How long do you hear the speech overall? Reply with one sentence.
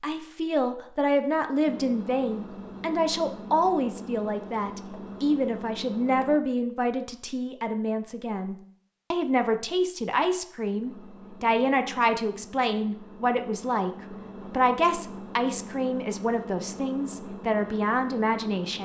The speech can be heard for 18 seconds in total.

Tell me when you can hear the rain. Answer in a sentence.
You can't hear the rain here.